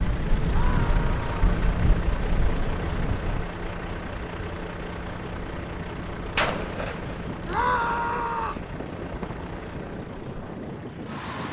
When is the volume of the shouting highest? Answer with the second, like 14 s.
8 s.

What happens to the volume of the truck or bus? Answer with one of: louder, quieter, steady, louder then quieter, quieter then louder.
quieter.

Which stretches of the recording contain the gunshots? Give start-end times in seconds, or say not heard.
6.2-7.5.